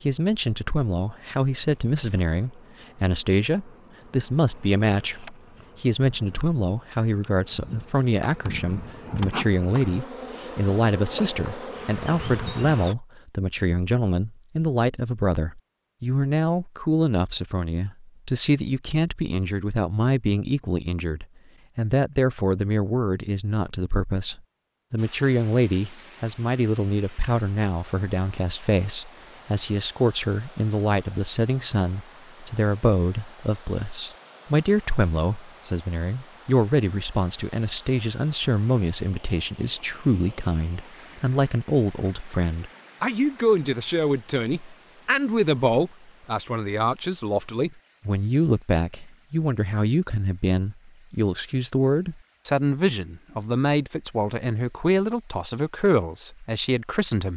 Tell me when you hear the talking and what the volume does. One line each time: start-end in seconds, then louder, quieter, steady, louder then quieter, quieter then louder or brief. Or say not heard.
0.0-57.3 steady.